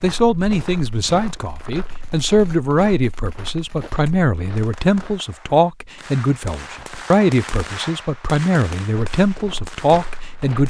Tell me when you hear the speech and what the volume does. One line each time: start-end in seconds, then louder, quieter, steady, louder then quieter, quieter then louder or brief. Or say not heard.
0.0-10.6 steady.